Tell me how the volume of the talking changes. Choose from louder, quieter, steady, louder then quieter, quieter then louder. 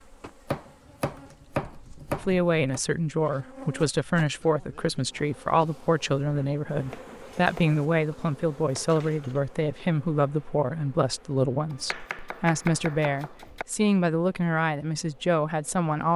steady.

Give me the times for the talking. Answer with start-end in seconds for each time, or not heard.
2.2-16.1.